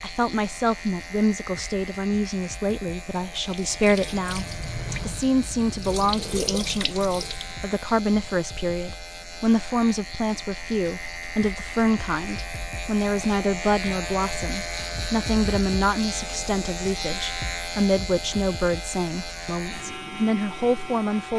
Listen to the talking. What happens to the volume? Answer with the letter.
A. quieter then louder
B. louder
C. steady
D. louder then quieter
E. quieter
C.